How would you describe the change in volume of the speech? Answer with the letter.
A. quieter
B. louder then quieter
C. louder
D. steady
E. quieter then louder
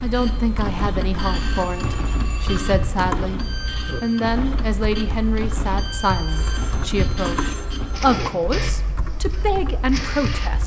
D.